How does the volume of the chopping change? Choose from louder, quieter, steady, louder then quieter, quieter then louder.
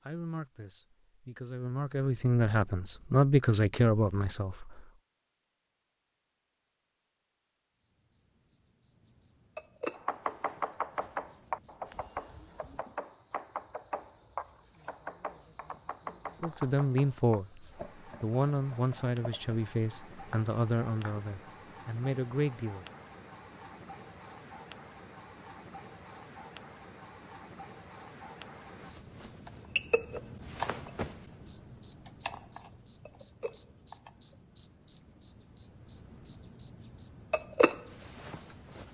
quieter.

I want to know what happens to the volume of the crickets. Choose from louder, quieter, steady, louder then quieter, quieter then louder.
louder.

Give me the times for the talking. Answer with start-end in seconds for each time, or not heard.
0.0-4.7, 16.4-22.9.